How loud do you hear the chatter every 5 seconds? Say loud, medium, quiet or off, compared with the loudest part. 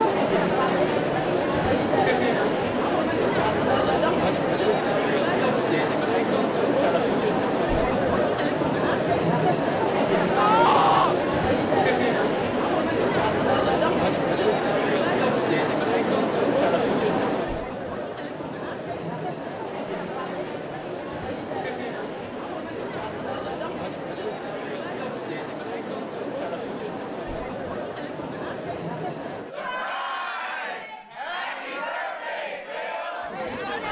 loud, loud, loud, loud, medium, medium, medium.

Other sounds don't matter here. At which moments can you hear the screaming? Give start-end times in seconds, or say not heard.
10.3-11.2.